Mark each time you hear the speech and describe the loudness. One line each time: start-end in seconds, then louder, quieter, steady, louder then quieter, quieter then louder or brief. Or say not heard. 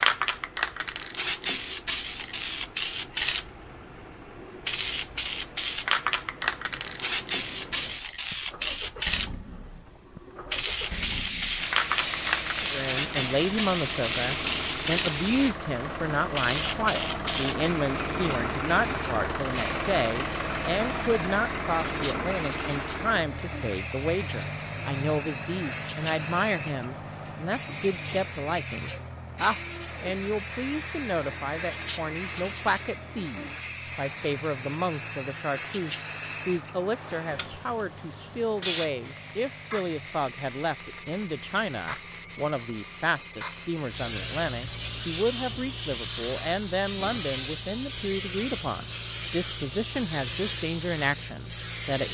12.6-52.0 steady.